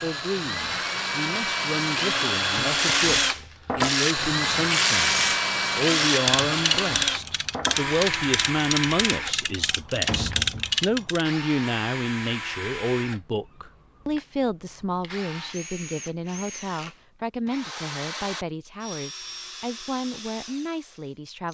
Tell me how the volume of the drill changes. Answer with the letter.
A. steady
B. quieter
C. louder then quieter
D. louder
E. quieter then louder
B.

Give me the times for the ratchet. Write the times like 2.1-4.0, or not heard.
2.6-11.2.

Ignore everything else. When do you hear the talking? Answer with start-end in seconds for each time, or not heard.
0.0-21.5.